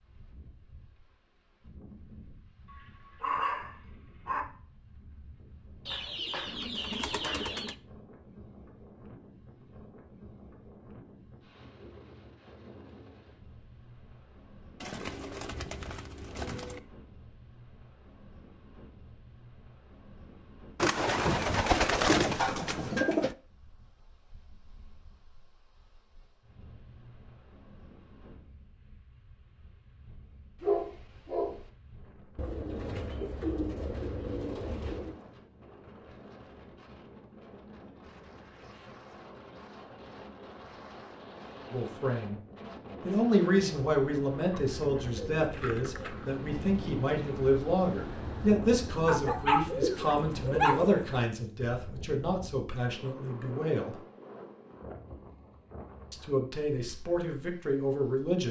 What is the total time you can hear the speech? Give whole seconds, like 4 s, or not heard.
14 s.